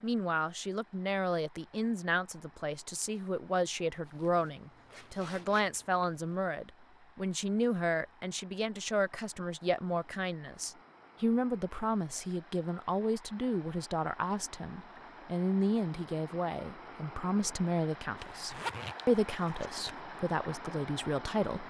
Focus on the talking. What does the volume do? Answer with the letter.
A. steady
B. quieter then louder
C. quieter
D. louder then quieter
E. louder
A.